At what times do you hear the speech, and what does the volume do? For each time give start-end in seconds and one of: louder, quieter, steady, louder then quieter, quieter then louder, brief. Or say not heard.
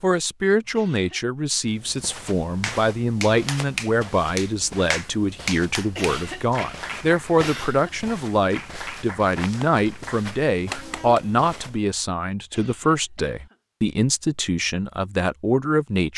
0.0-16.1 steady.